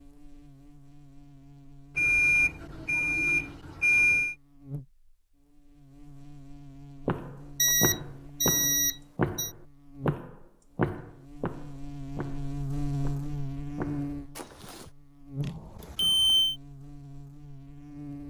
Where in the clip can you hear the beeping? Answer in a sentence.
You can hear the beeping from 1.9 to 4.3 s, from 7.5 to 9.5 s and from 15.4 to 16.6 s.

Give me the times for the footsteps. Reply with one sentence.
You can hear the footsteps from 7.0 to 14.9 s.